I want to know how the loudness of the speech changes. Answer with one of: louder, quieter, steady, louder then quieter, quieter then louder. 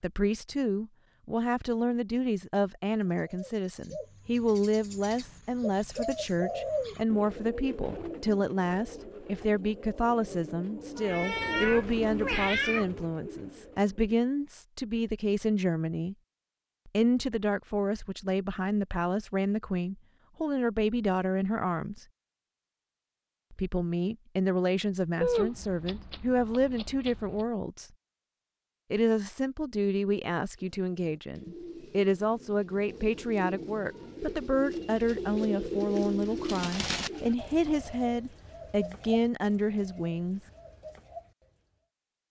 steady.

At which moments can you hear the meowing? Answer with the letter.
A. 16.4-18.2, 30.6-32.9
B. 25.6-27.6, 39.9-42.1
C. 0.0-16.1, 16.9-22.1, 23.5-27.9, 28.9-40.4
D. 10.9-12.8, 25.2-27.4
D.